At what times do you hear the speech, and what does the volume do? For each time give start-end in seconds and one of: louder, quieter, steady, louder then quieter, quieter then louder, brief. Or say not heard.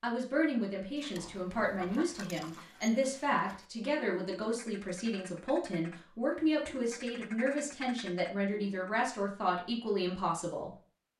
0.0-10.8 steady.